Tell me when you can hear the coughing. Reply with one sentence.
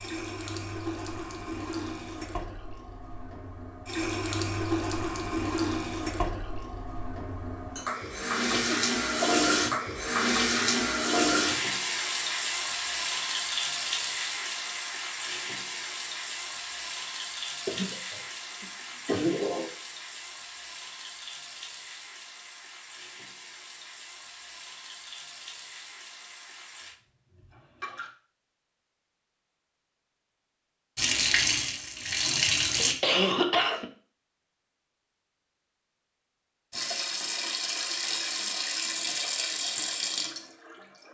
You can hear the coughing from 8.3 to 9.3 s, from 17.6 to 19.7 s and from 32.4 to 33.9 s.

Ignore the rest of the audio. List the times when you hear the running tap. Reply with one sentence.
You can hear the running tap from 0.0 to 28.1 s, from 30.9 to 33.0 s and from 36.7 to 41.0 s.